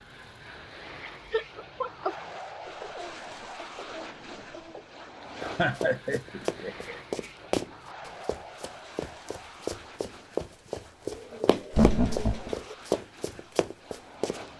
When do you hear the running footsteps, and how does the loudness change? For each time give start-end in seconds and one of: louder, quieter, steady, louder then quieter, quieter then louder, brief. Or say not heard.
5.4-14.4 steady.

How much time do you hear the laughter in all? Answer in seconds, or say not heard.
3 s.